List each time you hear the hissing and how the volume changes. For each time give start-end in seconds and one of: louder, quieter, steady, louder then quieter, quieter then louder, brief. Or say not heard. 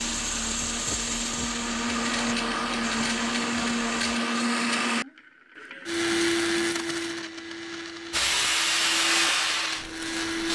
0.0-4.2 quieter
8.1-10.5 brief.